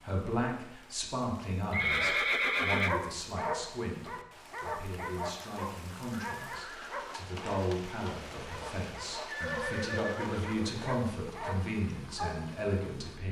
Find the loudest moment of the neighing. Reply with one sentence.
The volume of the neighing peaks at 2 seconds.